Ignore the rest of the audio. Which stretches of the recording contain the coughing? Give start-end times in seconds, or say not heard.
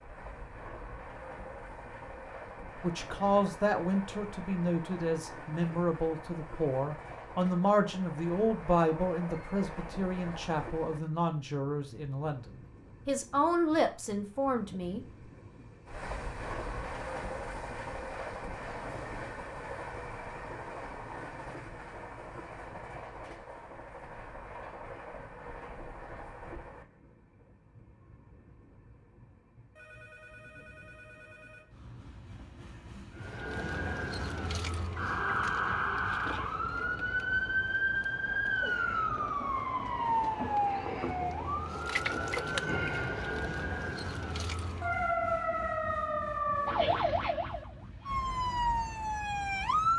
not heard.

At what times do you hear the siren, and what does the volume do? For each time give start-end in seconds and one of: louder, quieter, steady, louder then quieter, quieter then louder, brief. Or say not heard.
33.1-49.9 steady.